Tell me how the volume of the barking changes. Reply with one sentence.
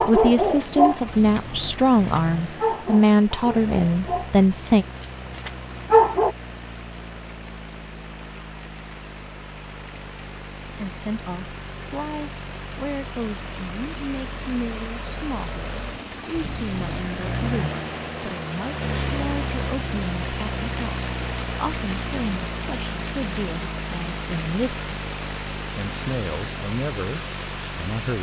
The volume of the barking goes down, then up.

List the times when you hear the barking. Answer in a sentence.
You can hear the barking from 0.0 to 6.3 s.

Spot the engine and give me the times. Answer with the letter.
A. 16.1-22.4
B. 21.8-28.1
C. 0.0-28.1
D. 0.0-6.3
C.